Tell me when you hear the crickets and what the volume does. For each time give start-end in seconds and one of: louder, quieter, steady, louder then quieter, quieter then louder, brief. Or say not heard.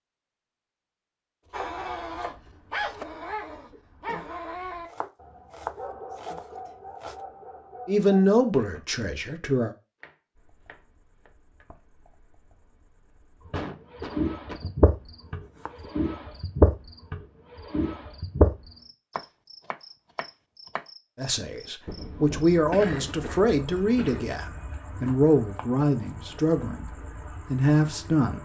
10.3-28.3 louder then quieter.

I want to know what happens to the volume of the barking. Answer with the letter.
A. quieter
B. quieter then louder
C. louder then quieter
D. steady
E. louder
A.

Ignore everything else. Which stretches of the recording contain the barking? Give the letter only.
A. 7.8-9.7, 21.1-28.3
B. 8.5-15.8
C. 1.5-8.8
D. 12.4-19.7
C.